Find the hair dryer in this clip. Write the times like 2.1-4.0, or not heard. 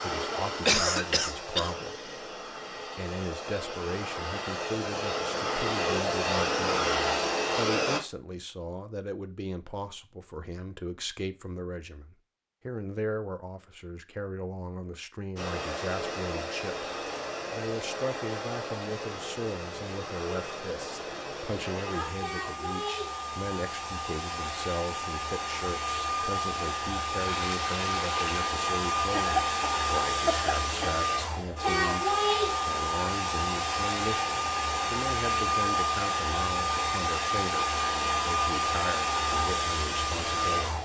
0.0-8.0, 15.3-40.8.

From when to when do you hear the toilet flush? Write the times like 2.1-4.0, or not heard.
27.1-28.5.